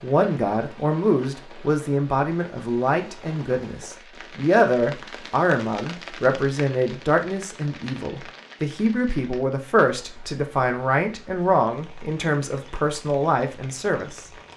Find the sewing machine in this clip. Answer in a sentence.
The sewing machine can't be heard in this clip.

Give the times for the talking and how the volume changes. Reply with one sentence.
The talking can be heard from 0.0 to 14.3 s, at a steady volume.